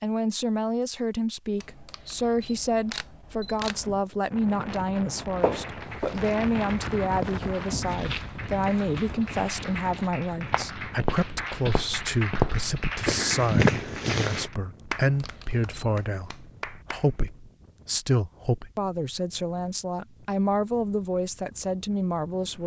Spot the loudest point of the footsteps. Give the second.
14 s.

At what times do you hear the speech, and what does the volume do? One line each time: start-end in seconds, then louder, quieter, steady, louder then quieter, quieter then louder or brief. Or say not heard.
0.0-22.6 steady.